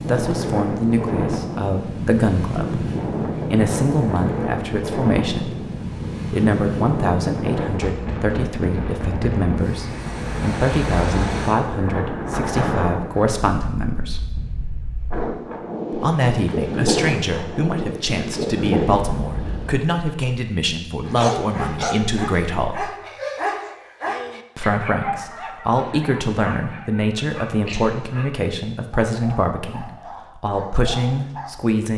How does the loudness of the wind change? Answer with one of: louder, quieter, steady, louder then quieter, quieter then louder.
steady.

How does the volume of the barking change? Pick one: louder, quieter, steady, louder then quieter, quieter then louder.
quieter.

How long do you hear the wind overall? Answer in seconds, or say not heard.
20 s.